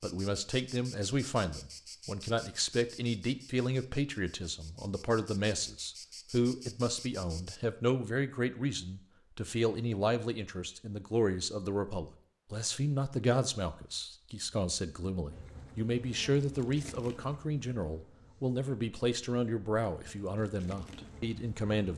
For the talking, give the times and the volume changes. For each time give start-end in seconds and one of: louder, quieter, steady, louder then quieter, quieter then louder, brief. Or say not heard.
0.0-21.9 steady.